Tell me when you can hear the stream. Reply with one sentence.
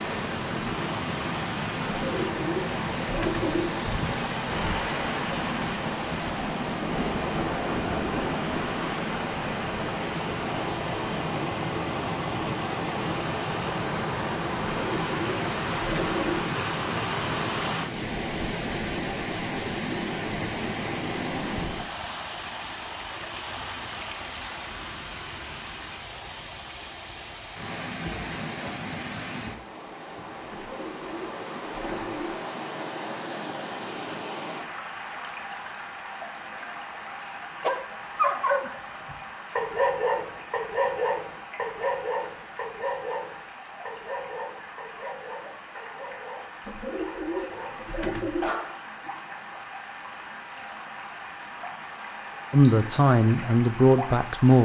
The stream can be heard from 0.0 to 54.6 s.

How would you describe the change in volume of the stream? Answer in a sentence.
The loudness of the stream goes down.